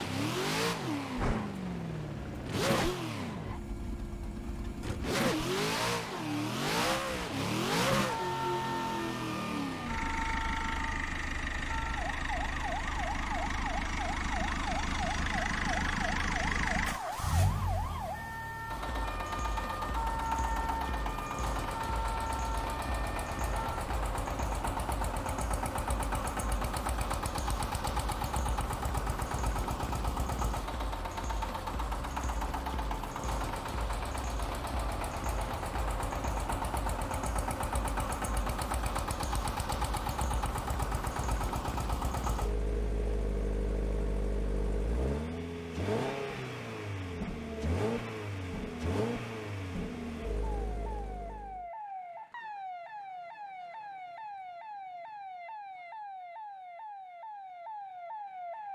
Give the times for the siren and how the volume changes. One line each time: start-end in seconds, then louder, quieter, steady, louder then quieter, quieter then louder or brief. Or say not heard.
8.0-23.9 steady
50.6-58.7 steady.